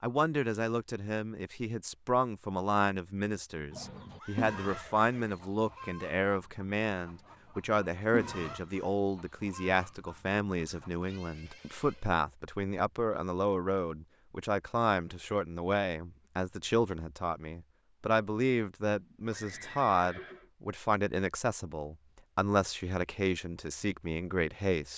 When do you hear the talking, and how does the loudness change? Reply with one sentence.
You can hear the talking from 0.0 to 24.9 s, at a steady volume.